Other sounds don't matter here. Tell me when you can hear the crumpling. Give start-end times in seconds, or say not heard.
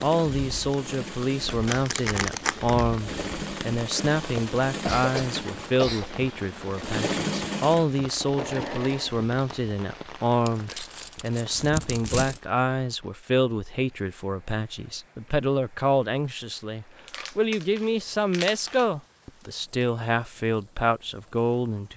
1.6-2.9, 10.4-12.4, 16.9-18.9.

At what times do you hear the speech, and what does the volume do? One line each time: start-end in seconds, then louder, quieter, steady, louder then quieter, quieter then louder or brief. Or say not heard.
0.0-21.9 steady.